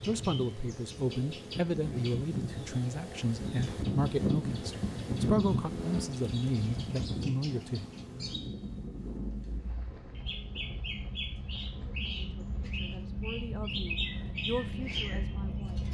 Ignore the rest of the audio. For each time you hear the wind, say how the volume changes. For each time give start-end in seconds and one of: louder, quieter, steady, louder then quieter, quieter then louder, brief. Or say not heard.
0.0-15.8 louder then quieter.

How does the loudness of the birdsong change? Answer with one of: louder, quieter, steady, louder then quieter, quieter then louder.
quieter then louder.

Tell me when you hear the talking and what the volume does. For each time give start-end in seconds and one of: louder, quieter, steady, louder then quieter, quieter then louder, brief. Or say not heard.
0.0-7.9 steady
11.8-15.8 louder then quieter.